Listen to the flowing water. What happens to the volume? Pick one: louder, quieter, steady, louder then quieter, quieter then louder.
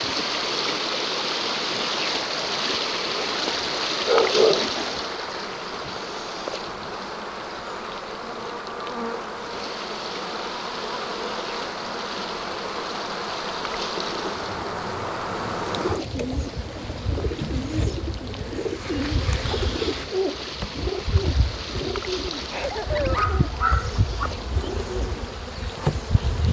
quieter.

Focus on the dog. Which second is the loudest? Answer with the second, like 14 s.
4 s.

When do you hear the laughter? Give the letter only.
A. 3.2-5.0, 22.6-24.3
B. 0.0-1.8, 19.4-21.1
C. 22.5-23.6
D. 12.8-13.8
C.